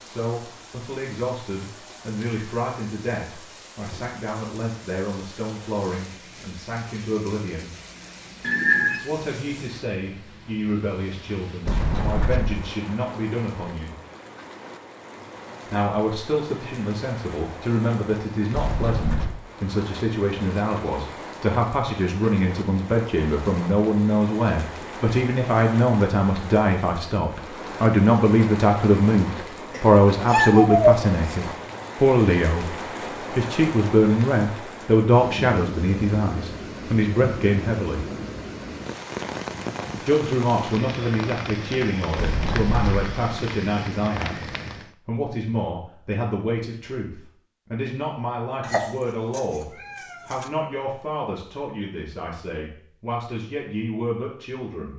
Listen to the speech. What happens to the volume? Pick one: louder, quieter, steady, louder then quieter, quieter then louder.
louder then quieter.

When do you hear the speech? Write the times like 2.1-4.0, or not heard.
0.1-7.7, 9.0-13.9, 15.7-38.0, 40.0-54.9.